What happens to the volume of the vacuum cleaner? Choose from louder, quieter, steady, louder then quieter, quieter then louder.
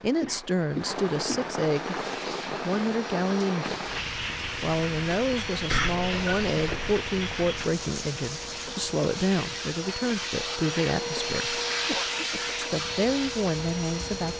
louder.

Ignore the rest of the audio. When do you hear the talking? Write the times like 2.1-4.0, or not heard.
0.0-11.6, 12.6-14.3.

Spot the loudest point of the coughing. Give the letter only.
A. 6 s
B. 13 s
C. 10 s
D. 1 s
A.